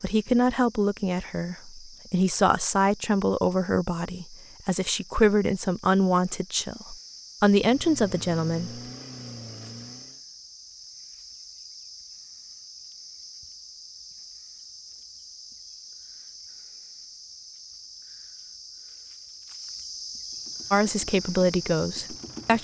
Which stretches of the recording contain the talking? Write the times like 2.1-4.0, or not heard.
0.0-8.8, 20.7-22.5.